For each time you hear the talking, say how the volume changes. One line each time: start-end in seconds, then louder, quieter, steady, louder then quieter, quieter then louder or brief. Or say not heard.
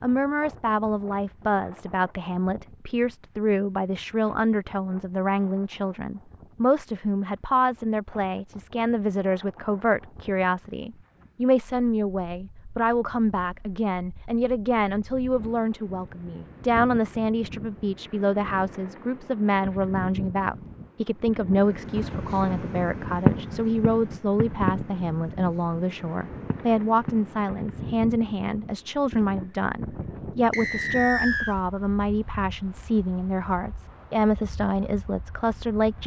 0.0-36.0 steady.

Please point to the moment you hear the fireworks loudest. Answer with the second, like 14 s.
23 s.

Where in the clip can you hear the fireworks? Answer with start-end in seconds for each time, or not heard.
21.6-27.4.